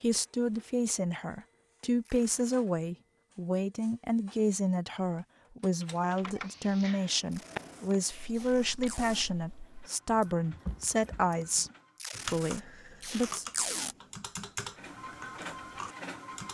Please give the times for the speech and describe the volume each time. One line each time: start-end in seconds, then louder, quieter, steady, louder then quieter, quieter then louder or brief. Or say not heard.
0.0-13.4 steady.